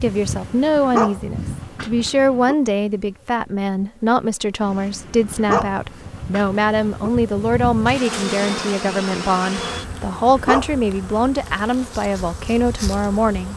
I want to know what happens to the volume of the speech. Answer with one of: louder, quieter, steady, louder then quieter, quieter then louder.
steady.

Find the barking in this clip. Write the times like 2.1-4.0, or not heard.
0.1-2.5, 4.6-7.1, 9.6-11.2.